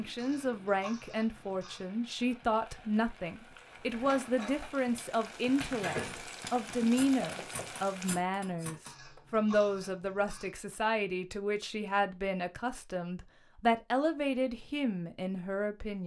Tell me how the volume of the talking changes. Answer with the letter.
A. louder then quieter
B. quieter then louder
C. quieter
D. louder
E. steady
E.